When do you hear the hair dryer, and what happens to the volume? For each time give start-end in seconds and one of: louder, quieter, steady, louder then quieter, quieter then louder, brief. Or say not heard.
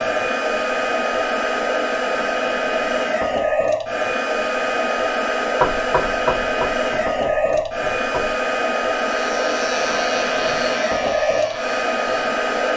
0.0-12.7 steady.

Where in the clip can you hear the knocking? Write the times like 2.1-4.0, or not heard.
5.6-8.3.